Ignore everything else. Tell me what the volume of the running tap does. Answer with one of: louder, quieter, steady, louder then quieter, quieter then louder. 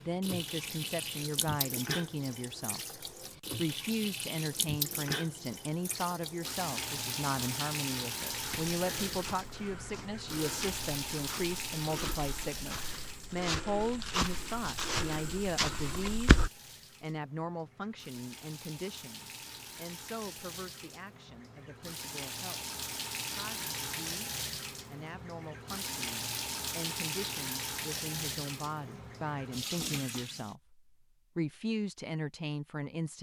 quieter then louder.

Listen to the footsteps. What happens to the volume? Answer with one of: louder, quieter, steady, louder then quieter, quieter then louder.
louder.